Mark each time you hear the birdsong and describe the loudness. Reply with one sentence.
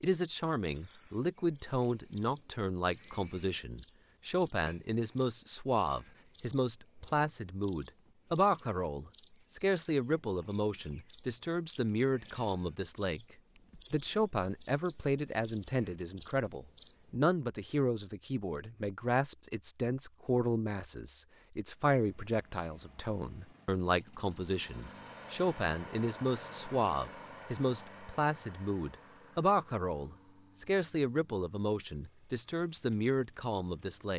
The birdsong can be heard from 0.0 to 16.9 s, getting louder.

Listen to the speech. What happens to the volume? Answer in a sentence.
The loudness of the speech stays about the same.